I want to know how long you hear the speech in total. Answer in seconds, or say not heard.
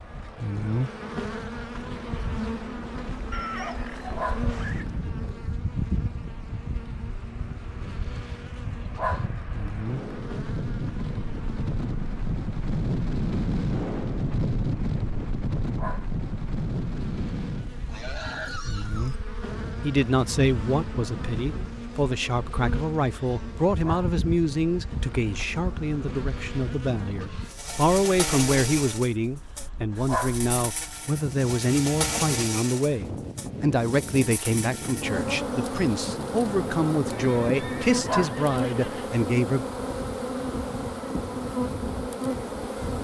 20 s.